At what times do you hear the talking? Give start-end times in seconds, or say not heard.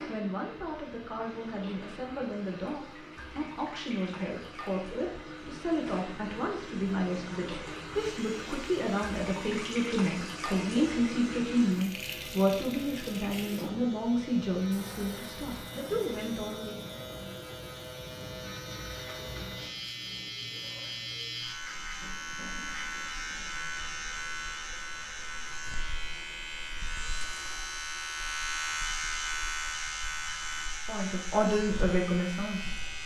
0.0-16.9, 30.9-33.0.